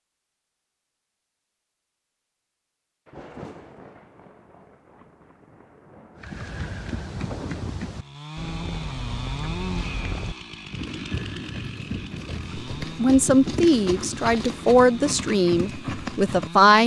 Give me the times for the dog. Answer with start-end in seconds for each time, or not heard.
not heard.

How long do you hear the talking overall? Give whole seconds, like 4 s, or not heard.
4 s.